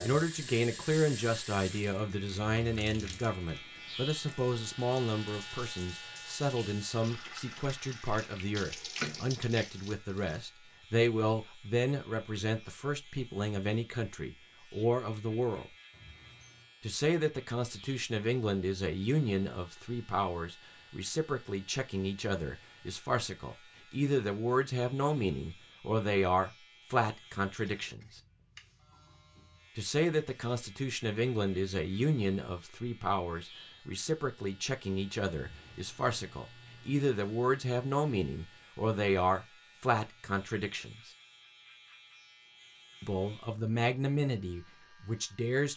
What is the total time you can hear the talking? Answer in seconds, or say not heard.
41 s.